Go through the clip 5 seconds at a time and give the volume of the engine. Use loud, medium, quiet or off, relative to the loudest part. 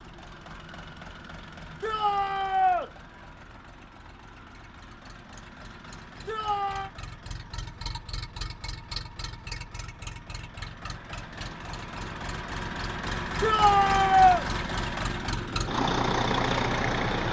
quiet, quiet, medium, loud.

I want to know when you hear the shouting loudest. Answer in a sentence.
The loudest moment of the shouting is at 14 seconds.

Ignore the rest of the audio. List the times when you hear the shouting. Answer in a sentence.
The shouting can be heard from 1.8 to 2.9 s, from 6.2 to 6.9 s and from 13.4 to 14.4 s.